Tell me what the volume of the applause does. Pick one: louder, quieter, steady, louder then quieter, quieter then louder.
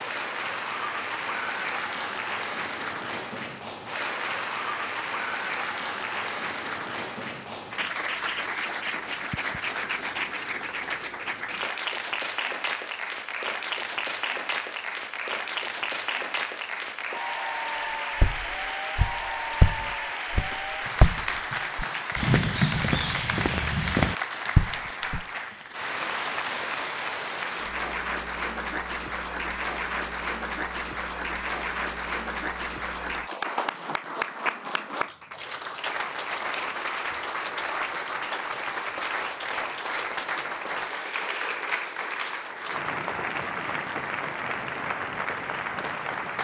steady.